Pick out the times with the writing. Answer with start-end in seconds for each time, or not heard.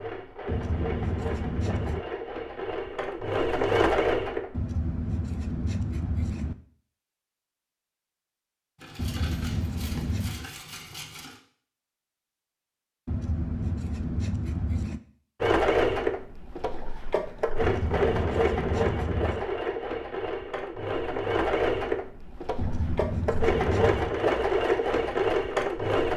0.5-2.0, 4.5-6.5, 8.9-10.5, 13.1-15.0, 17.6-19.4, 22.6-24.2.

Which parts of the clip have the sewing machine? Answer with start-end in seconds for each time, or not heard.
0.0-4.6, 15.4-26.1.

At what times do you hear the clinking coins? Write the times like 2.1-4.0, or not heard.
8.8-11.4.